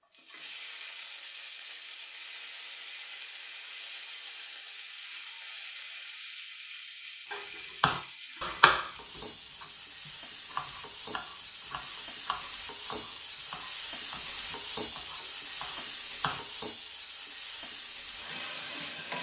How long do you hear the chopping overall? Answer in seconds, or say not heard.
9 s.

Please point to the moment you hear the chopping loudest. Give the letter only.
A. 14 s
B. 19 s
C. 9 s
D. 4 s
C.